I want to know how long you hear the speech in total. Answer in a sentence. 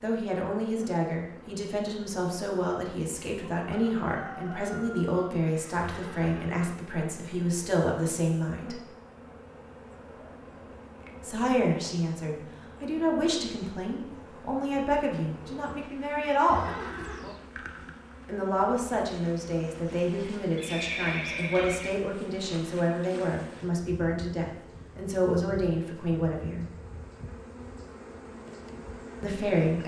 You can hear the speech for 23 seconds altogether.